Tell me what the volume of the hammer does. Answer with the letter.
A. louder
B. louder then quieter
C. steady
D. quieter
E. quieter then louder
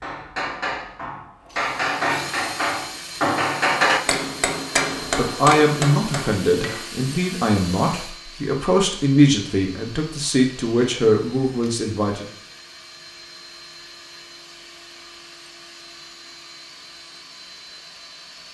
B.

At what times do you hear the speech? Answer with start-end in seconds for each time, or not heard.
5.2-12.2.